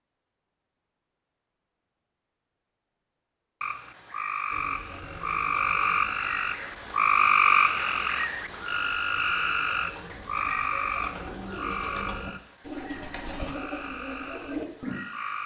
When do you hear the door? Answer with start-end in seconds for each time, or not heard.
not heard.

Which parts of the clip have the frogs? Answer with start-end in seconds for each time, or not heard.
3.6-15.4.